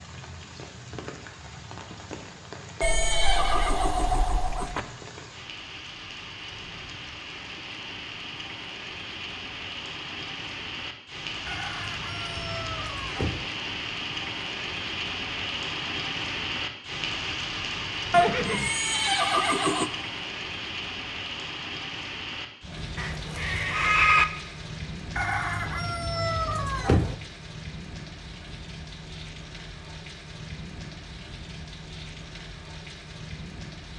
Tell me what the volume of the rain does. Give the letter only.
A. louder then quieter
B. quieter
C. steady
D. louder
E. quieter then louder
A.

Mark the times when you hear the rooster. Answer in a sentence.
You can hear the rooster from 11.4 to 13.4 s and from 25.1 to 27.1 s.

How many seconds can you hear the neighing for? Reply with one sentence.
You can hear the neighing for 5 seconds altogether.